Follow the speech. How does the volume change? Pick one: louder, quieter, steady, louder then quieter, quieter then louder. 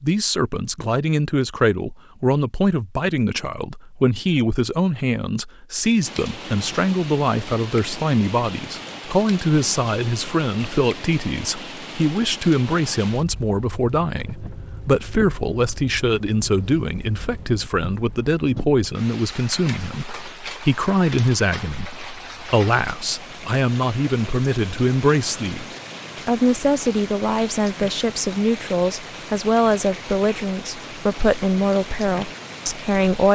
steady.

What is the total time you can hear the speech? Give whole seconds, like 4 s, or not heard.
33 s.